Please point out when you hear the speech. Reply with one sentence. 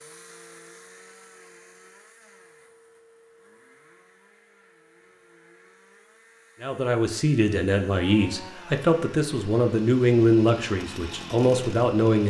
You can hear the speech from 6.6 to 12.2 s.